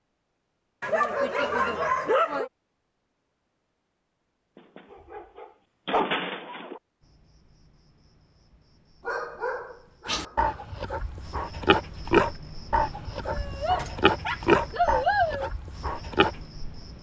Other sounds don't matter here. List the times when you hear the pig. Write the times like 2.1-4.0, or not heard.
10.1-16.4.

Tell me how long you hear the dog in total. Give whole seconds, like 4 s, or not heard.
8 s.